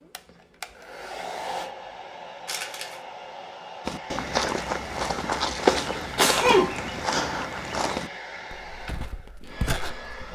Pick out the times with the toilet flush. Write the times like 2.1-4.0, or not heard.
not heard.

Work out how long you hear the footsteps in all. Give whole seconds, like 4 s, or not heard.
6 s.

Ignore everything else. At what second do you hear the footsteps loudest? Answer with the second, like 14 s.
6 s.